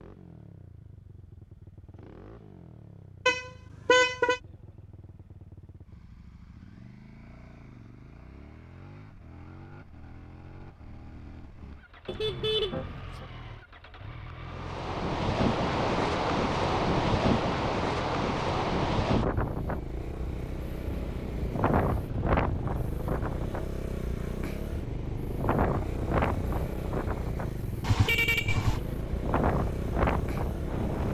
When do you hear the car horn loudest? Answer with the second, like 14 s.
4 s.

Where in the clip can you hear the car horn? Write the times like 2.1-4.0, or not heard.
3.2-4.4, 12.1-13.2, 27.8-28.8.